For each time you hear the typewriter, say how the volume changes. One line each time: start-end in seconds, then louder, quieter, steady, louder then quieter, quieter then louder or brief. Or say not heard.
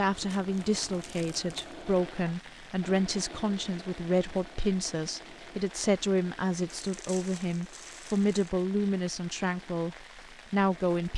not heard.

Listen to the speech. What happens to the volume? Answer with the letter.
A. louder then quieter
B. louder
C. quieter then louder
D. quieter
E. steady
E.